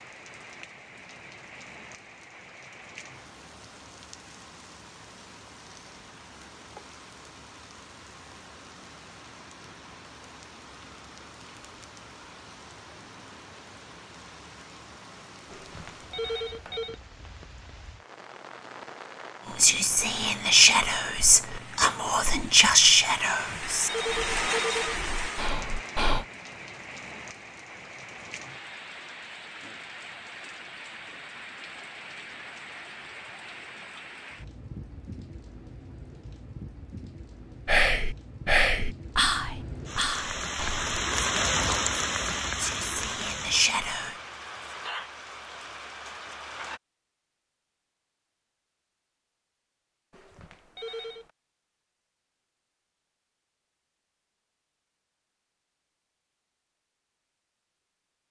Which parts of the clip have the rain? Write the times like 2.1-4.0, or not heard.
0.0-46.8.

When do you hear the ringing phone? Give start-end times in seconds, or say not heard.
15.5-16.9, 23.2-25.0, 50.1-51.3.